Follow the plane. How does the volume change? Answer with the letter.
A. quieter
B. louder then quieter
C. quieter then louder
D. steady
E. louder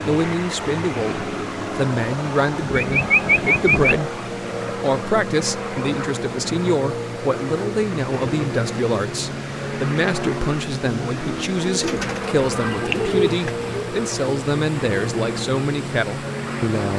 D.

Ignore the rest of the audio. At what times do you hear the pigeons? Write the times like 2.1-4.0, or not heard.
2.7-4.0, 11.8-13.9.